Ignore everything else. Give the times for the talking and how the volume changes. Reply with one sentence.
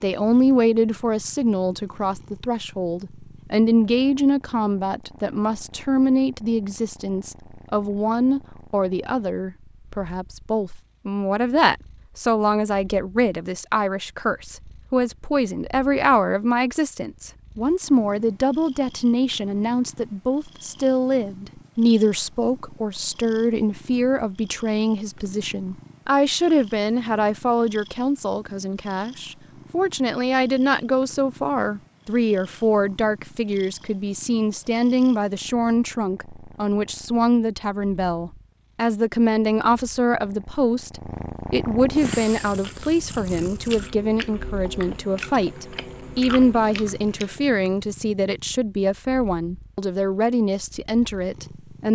You can hear the talking from 0.0 to 51.9 s, at a steady volume.